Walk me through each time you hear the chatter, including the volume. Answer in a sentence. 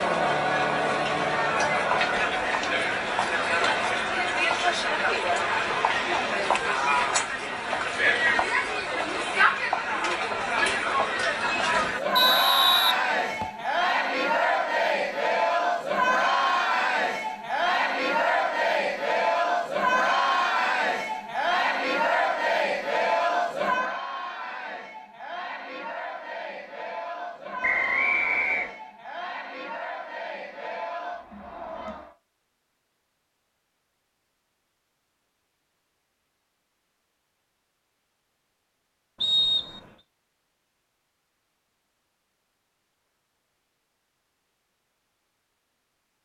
You can hear the chatter from 0.0 to 32.1 s, getting quieter.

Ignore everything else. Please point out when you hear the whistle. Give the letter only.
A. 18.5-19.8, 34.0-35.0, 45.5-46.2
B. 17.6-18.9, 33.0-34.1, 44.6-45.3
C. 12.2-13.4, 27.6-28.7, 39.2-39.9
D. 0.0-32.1
C.